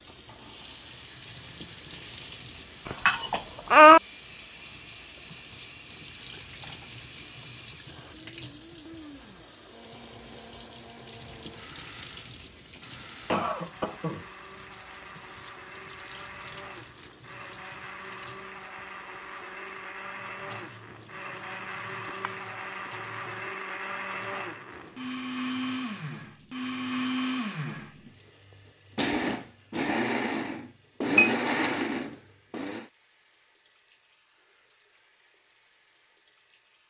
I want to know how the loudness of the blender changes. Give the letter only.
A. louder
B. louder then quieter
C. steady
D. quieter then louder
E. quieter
A.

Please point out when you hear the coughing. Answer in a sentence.
You can hear the coughing from 13.2 to 14.2 s.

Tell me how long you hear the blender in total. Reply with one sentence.
The blender can be heard for 33 seconds in total.